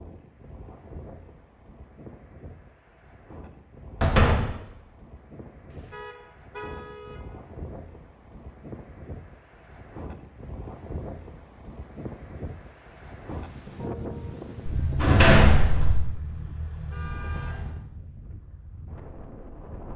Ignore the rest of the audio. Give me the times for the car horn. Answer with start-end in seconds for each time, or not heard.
5.7-7.2, 15.9-17.8.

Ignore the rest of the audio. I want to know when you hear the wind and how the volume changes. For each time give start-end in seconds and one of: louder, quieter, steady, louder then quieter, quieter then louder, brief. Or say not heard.
0.0-19.9 louder then quieter.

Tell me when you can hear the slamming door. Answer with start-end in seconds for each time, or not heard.
4.0-4.5, 14.7-16.0.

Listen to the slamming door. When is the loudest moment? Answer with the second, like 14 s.
15 s.